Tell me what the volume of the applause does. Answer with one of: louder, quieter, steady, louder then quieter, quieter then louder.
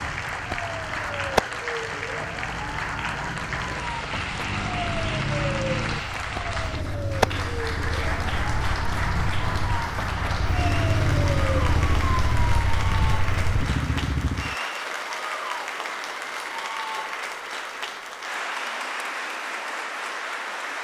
steady.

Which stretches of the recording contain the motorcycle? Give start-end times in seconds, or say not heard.
4.2-14.6.